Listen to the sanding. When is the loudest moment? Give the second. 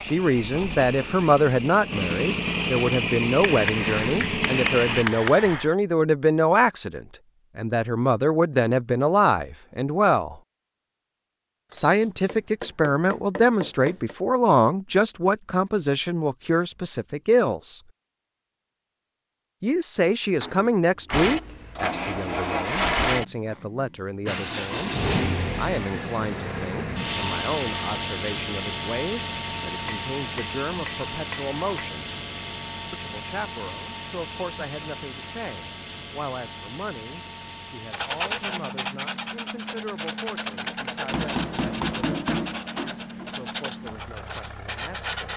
38 s.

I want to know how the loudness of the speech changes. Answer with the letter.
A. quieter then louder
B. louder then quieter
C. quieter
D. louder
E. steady
C.